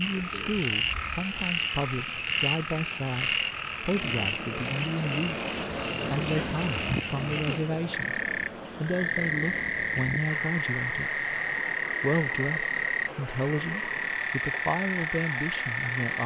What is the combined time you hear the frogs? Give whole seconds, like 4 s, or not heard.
16 s.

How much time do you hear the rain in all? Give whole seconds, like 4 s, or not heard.
16 s.